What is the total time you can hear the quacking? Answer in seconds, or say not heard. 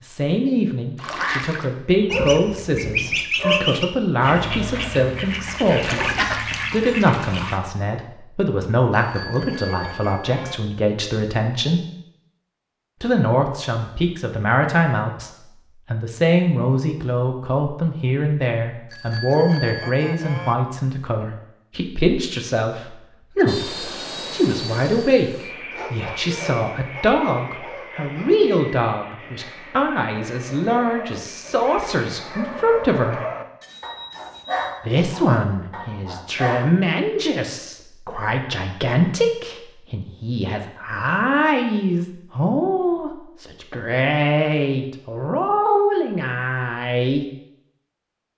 7 s.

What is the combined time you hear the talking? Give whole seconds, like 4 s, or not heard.
44 s.